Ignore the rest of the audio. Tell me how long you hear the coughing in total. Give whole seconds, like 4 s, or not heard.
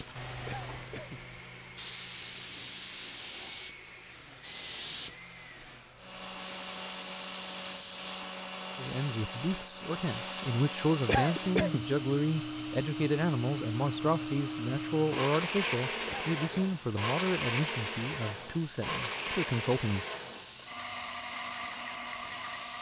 2 s.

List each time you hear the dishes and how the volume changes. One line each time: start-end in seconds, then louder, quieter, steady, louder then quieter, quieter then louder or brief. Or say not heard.
not heard.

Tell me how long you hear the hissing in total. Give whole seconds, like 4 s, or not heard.
23 s.